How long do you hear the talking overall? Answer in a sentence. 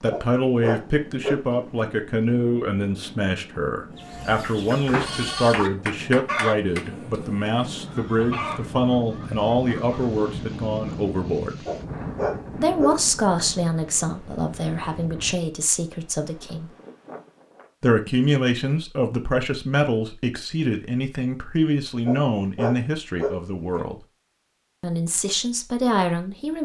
The talking can be heard for 24 seconds in total.